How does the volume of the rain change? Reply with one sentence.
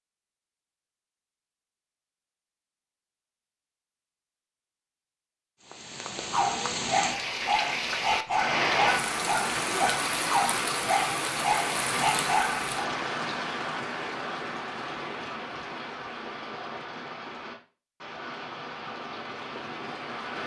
The volume of the rain goes down.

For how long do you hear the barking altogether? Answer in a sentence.
The barking can be heard for 7 seconds in total.